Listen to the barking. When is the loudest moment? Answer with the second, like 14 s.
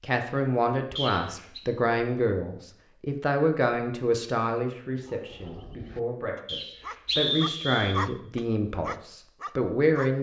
8 s.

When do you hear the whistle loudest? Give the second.
7 s.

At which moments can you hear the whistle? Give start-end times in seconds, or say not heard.
0.9-1.6, 6.5-8.0.